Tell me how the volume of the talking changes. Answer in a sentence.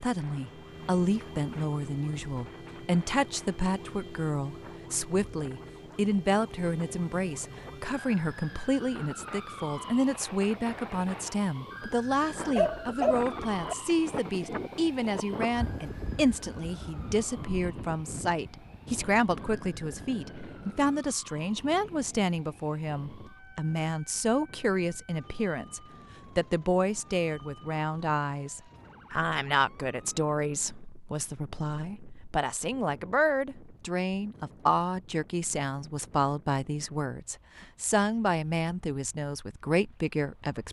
The loudness of the talking stays about the same.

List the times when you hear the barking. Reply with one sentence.
You can hear the barking from 12.6 to 13.8 s.